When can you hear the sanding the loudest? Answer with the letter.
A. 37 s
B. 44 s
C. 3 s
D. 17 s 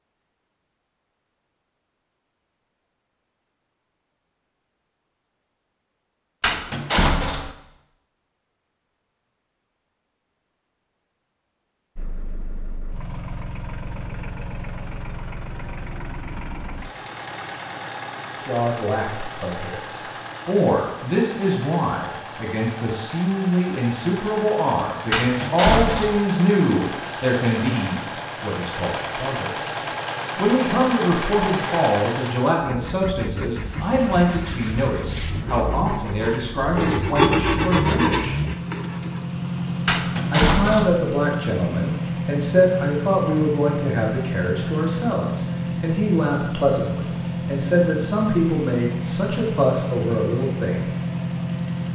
A.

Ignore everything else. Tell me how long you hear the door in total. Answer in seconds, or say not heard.
3 s.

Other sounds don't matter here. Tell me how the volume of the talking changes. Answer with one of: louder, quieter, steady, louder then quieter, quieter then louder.
steady.